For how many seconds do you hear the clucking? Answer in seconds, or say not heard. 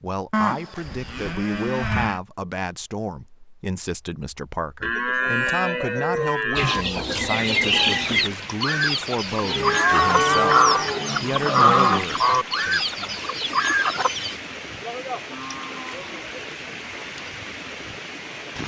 8 s.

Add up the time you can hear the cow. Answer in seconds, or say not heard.
8 s.